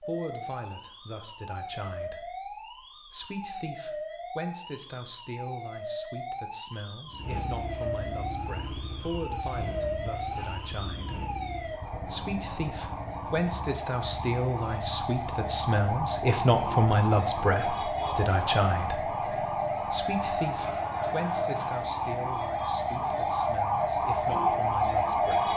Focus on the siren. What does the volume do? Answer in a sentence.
The volume of the siren goes up.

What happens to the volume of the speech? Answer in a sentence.
The loudness of the speech goes up, then down.